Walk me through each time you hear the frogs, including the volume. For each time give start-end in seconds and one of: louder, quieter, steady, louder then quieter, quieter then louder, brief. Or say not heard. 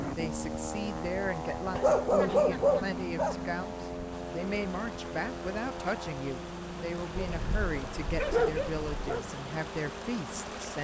not heard.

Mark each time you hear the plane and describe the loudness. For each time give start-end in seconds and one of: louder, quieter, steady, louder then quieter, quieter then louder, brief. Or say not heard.
0.0-10.7 quieter.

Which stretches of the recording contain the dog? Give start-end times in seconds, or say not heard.
1.8-3.4, 7.2-9.2.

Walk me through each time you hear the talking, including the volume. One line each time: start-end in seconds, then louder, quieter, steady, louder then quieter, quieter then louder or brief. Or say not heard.
0.1-10.7 steady.